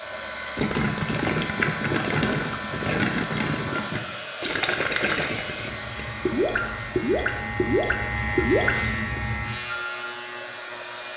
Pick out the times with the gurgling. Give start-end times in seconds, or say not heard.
0.6-9.2.